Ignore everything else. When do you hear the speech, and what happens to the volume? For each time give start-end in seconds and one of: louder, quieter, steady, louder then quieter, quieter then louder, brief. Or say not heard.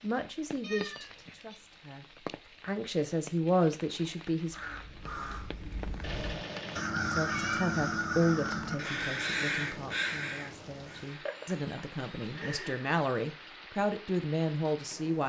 0.0-4.5 quieter then louder
7.1-15.2 quieter then louder.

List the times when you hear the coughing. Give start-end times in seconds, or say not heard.
not heard.